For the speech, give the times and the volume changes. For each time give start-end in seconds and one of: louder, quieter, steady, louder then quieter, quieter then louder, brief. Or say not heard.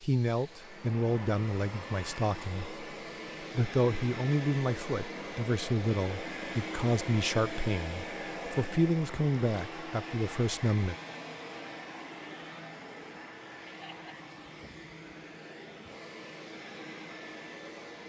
0.0-2.8 brief
3.5-10.9 steady.